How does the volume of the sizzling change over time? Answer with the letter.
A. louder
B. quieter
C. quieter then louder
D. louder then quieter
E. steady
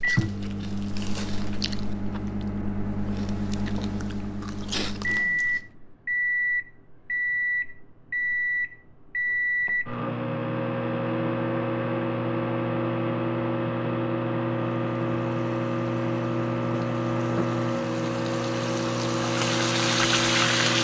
A.